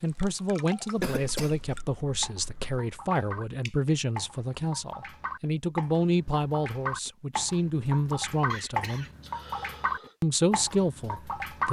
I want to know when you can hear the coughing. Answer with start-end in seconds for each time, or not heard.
0.9-2.8, 8.5-10.2.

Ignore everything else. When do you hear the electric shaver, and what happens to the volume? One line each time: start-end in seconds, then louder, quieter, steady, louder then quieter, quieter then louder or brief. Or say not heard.
not heard.